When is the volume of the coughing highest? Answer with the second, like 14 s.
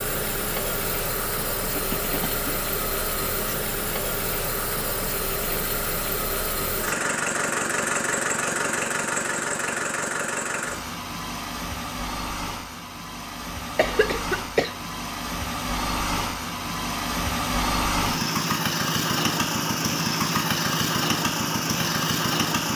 14 s.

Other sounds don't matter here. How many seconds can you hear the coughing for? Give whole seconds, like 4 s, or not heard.
2 s.